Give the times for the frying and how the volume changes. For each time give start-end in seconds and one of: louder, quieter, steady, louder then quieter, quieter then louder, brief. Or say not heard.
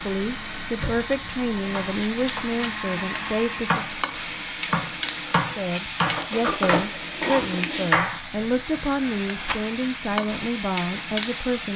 0.0-11.7 steady.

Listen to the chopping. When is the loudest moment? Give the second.
8 s.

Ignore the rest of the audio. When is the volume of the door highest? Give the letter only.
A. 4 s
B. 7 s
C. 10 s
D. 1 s
B.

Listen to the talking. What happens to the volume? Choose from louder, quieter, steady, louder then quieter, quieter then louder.
steady.